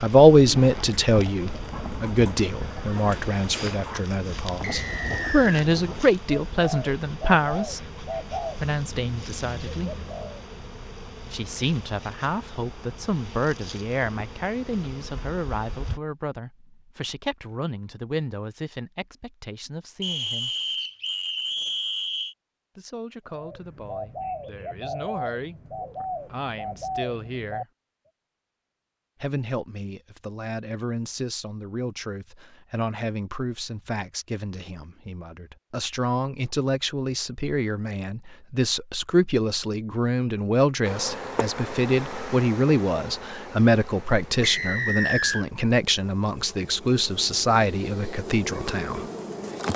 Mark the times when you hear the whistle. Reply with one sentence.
The whistle can be heard from 4.6 to 5.6 s, from 20.0 to 22.4 s and from 44.4 to 45.5 s.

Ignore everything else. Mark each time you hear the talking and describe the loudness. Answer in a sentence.
You can hear the talking from 0.0 to 7.8 s, getting quieter then louder; briefly from 8.6 to 9.9 s; from 11.3 to 20.5 s, getting quieter; from 22.8 to 27.6 s, getting quieter then louder; and from 29.2 to 49.0 s, getting louder.